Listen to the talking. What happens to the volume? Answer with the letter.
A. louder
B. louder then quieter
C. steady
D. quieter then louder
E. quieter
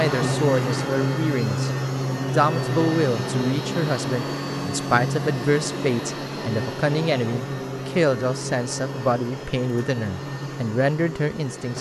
C.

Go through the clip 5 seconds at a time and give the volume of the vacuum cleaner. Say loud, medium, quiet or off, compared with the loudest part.
loud, medium, medium.